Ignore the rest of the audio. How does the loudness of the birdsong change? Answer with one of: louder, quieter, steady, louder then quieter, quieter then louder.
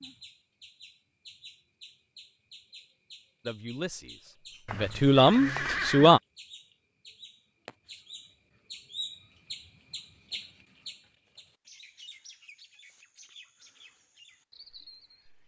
louder then quieter.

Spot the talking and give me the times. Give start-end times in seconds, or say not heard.
3.5-6.2.